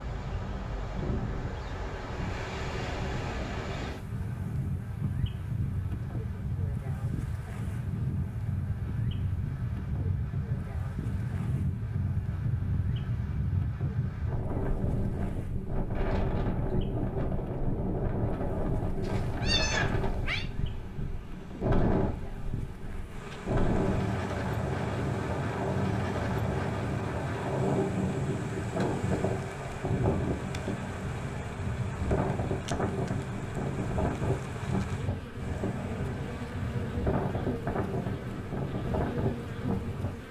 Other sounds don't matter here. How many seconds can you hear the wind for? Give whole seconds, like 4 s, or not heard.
40 s.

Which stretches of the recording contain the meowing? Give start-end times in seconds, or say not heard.
19.0-20.4.